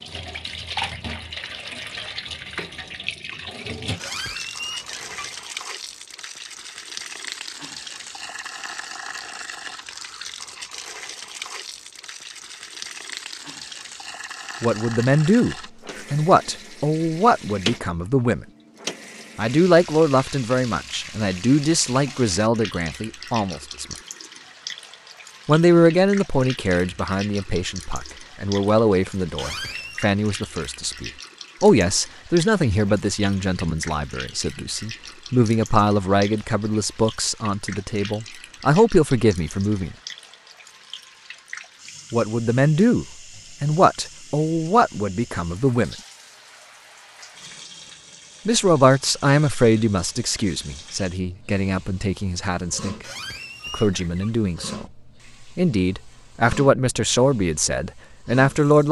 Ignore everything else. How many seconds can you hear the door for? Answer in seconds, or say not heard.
4 s.